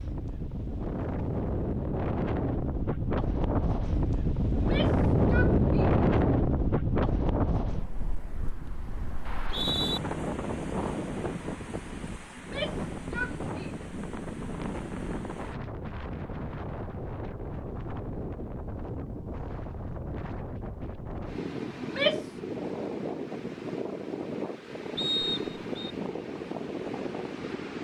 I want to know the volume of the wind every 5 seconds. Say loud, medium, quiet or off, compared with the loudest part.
loud, loud, medium, medium, medium, medium.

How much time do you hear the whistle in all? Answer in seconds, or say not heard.
2 s.